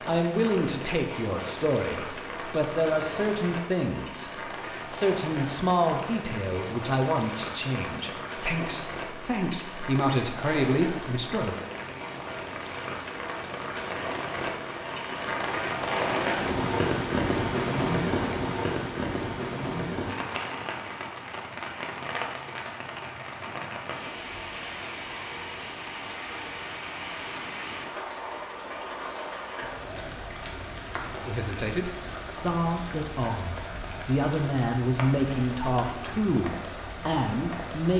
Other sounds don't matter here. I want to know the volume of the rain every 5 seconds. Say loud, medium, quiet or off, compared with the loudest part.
medium, medium, medium, loud, medium, medium, medium, medium.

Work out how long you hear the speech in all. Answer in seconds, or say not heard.
18 s.